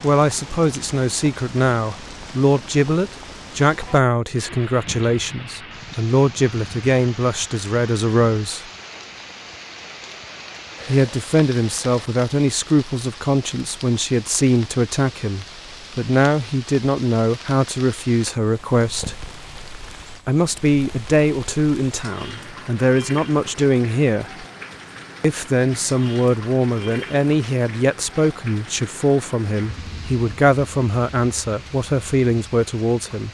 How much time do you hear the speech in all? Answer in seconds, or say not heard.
29 s.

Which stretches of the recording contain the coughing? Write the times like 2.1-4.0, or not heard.
not heard.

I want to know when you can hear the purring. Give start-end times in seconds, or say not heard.
not heard.